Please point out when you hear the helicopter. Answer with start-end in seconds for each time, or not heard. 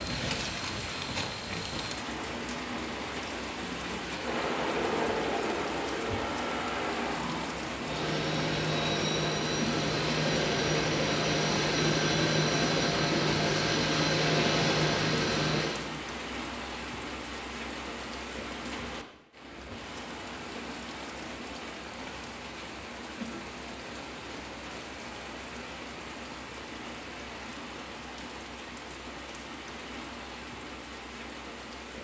4.2-15.8.